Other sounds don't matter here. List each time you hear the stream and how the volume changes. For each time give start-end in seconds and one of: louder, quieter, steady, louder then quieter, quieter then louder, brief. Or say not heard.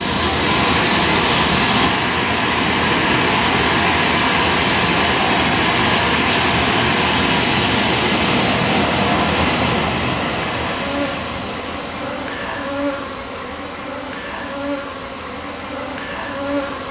0.0-16.8 quieter.